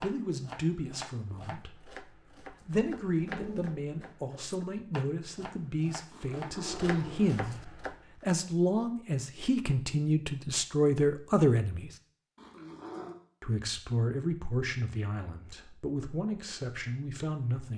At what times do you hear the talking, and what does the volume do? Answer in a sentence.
You can hear the talking briefly from 0.0 to 1.9 s; from 2.6 to 11.9 s, getting louder; and from 13.4 to 17.7 s, getting quieter then louder.